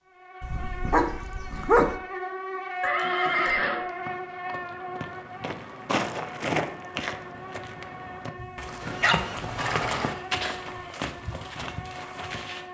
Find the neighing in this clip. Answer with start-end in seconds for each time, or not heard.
2.8-3.9, 8.8-10.2.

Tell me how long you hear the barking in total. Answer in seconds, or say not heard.
3 s.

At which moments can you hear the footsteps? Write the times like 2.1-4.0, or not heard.
3.0-12.6.